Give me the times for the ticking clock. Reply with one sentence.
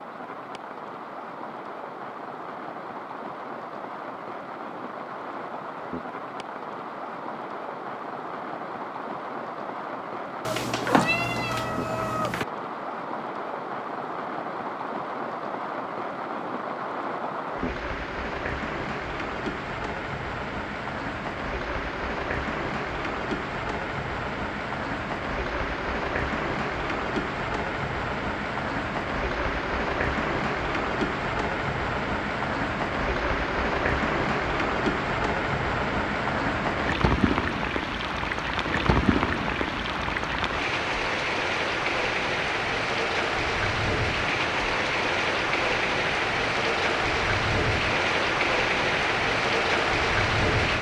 The ticking clock can't be heard in this clip.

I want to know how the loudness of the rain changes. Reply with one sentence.
The volume of the rain goes up.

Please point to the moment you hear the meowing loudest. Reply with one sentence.
The volume of the meowing peaks at 11 seconds.